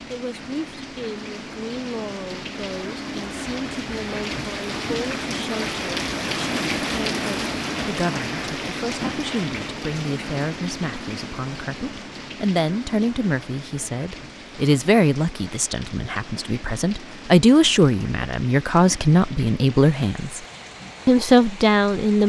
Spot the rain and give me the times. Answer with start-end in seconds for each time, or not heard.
0.0-22.2.